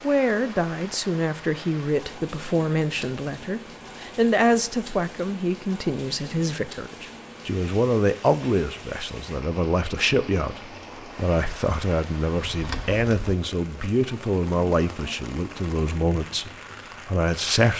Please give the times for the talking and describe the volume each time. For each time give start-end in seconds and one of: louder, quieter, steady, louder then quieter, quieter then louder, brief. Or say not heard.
0.0-17.7 steady.